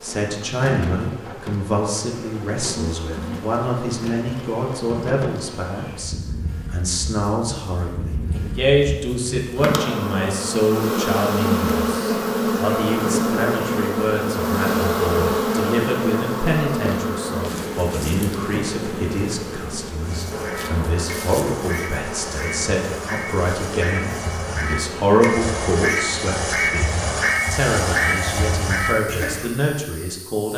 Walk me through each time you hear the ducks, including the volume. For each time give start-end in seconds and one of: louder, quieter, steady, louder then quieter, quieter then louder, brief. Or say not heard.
20.0-29.5 louder.